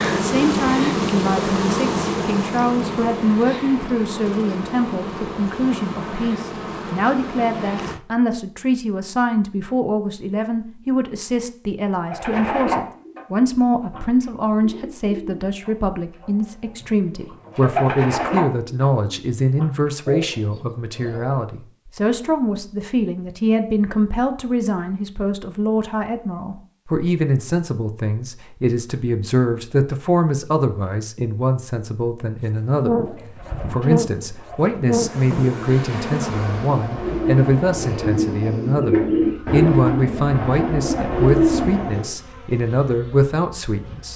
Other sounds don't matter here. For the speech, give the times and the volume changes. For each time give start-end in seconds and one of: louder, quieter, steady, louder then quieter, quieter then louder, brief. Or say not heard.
0.1-44.1 steady.